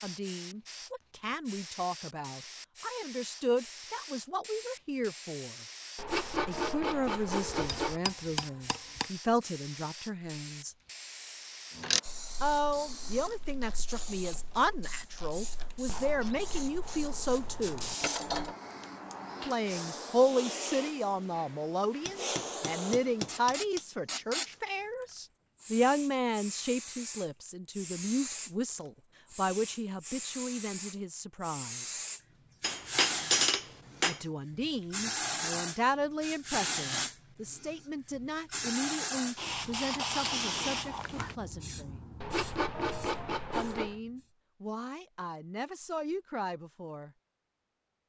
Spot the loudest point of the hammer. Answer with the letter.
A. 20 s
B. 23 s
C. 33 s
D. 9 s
C.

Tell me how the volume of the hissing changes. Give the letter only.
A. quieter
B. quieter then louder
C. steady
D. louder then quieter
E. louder
E.